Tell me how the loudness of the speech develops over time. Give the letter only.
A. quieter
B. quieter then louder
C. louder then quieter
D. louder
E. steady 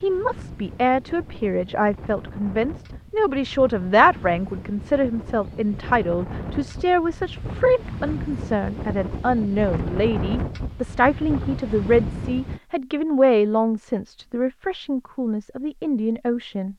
E.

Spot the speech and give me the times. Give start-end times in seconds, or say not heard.
0.0-16.7.